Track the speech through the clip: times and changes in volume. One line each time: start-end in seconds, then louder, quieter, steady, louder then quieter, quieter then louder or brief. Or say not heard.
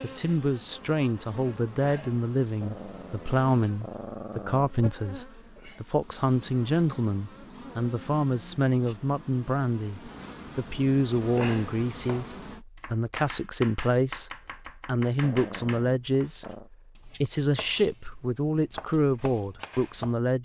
0.0-20.4 steady.